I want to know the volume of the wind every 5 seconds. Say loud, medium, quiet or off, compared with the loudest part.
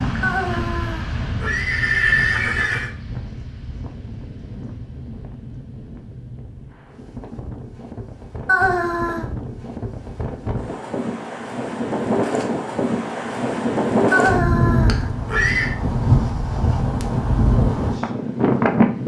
medium, quiet, loud, loud.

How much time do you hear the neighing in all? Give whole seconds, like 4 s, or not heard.
5 s.